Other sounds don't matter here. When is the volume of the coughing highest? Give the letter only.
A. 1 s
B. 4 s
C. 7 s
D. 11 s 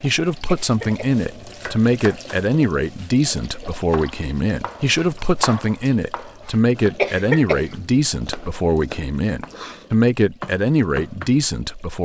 C.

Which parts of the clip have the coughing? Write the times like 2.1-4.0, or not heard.
0.5-1.2, 7.0-7.7.